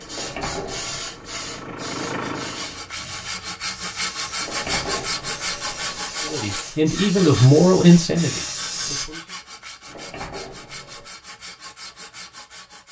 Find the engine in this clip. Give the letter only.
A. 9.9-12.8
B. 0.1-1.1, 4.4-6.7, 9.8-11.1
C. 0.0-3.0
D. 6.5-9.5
C.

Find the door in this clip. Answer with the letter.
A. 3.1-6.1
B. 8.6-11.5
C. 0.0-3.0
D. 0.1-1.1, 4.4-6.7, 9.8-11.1
D.